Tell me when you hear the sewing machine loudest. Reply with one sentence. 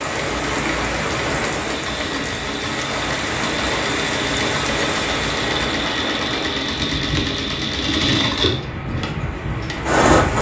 The loudest moment of the sewing machine is at 10 seconds.